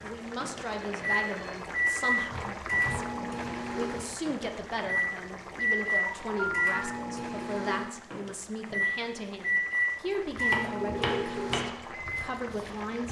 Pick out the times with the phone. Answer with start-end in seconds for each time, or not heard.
0.7-1.6, 6.0-6.7, 10.8-11.4.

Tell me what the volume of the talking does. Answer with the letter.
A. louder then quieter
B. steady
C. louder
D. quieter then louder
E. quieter
B.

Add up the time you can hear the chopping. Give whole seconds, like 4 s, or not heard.
5 s.